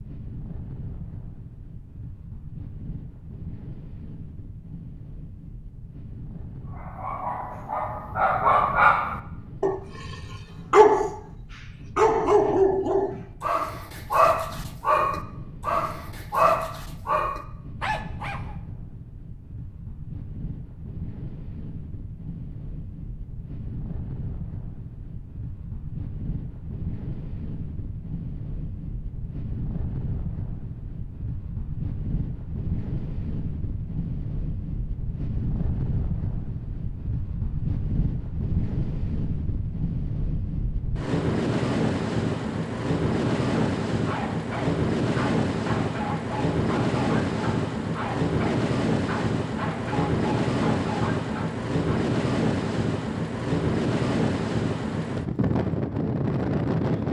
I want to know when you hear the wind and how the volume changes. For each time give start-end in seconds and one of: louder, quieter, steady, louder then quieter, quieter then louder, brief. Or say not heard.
0.0-57.0 louder.